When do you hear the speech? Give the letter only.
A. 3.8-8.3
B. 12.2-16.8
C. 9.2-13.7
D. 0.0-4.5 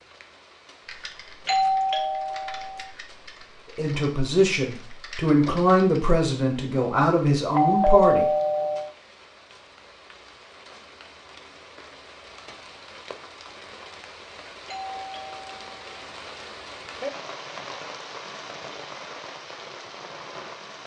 A.